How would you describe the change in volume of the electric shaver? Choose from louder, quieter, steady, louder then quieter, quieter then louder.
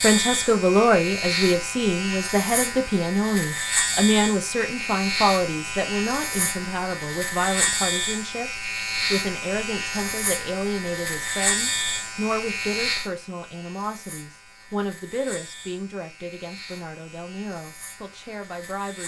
quieter.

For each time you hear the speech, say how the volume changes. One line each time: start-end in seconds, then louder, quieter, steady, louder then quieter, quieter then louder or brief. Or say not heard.
0.0-19.0 quieter.